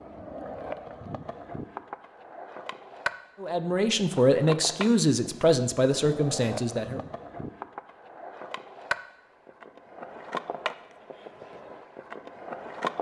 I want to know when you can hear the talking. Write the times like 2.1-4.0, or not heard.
3.4-7.0.